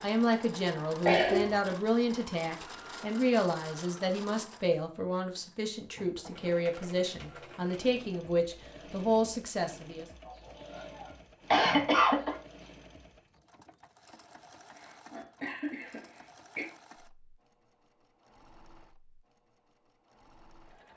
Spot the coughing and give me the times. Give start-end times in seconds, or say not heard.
1.1-1.6, 10.2-12.3, 14.8-16.6.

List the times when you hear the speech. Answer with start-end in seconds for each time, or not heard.
0.0-10.1.